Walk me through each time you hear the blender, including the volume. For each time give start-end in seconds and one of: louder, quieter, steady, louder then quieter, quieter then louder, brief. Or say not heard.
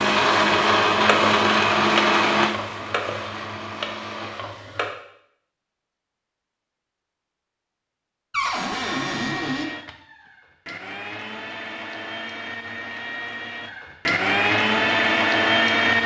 0.0-4.3 quieter
8.7-16.0 louder.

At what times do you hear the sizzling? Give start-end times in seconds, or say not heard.
0.0-5.0.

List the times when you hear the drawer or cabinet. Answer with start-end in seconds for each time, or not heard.
8.3-9.7.